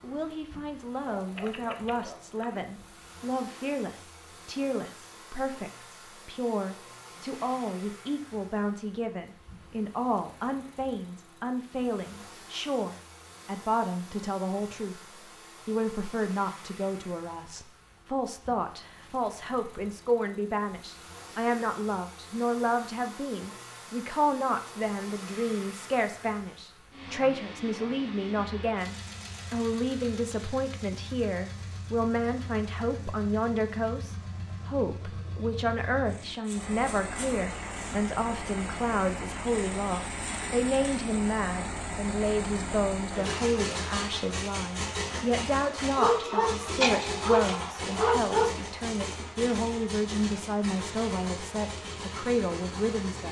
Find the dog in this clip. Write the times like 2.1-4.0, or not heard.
1.1-2.6, 46.0-48.5.